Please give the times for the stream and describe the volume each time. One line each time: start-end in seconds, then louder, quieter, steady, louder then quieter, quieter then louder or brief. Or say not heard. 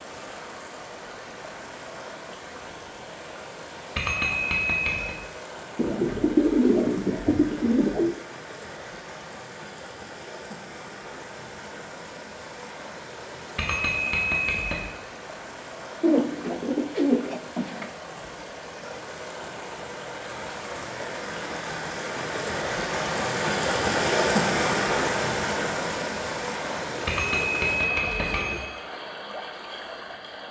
0.0-30.4 louder.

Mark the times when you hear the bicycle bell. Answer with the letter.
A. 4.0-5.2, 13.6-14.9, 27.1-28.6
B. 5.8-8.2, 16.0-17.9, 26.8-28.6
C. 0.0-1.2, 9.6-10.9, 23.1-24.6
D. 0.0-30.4
A.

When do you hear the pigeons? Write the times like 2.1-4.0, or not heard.
5.8-8.2, 16.0-17.9, 26.8-28.6.